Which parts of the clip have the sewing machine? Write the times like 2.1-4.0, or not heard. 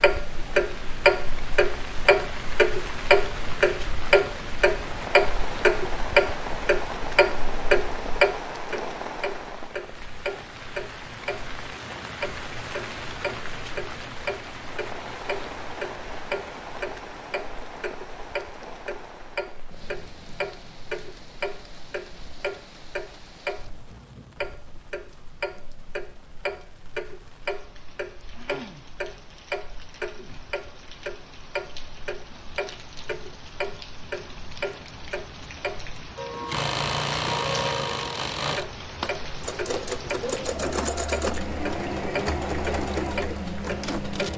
36.3-44.3.